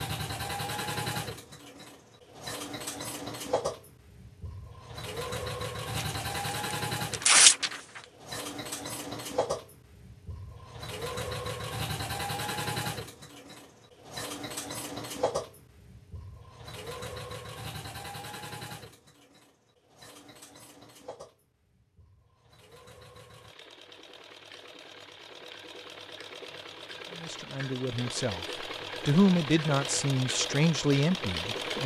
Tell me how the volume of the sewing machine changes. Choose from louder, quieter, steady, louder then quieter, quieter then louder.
quieter then louder.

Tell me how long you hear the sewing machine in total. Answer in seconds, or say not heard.
32 s.